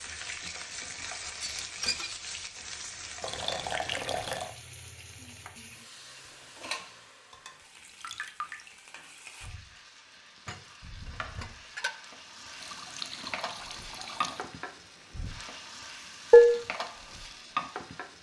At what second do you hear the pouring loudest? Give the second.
4 s.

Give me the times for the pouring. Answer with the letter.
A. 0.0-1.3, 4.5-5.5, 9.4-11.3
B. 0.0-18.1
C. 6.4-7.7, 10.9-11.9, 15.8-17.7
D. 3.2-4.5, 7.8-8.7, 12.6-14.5
D.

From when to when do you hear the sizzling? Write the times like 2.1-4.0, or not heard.
0.0-18.1.